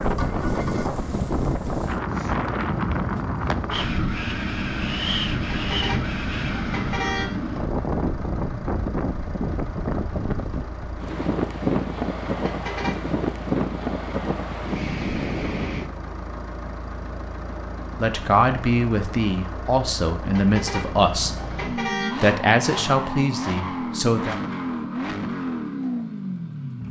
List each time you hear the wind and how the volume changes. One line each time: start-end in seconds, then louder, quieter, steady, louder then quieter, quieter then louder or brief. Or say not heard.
0.0-15.9 steady.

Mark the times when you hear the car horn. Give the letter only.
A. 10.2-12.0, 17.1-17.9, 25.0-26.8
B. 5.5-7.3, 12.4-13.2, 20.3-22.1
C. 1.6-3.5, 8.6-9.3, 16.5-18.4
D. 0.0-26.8
B.